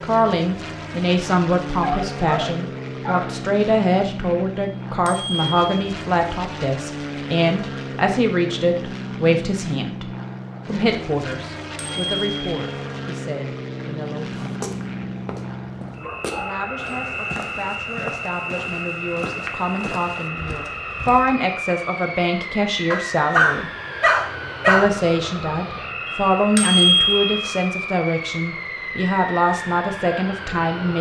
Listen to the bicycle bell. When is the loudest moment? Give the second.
27 s.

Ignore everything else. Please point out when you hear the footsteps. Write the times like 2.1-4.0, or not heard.
14.3-21.4.